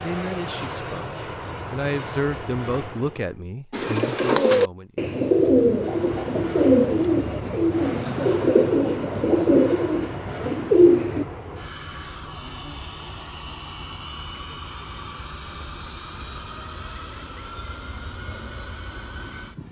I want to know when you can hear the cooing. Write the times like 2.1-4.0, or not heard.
3.7-11.2.